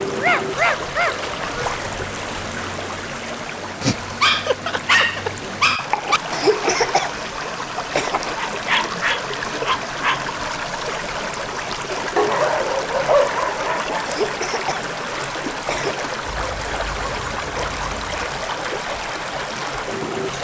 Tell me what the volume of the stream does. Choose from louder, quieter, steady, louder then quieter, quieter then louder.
steady.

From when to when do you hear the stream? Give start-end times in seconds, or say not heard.
0.0-20.3.